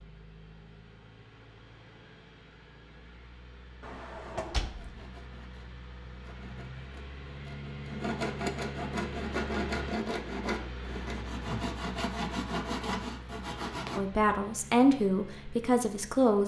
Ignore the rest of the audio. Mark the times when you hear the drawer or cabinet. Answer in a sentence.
The drawer or cabinet can be heard from 3.8 to 5.0 s.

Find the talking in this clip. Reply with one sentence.
You can hear the talking from 13.9 to 16.4 s.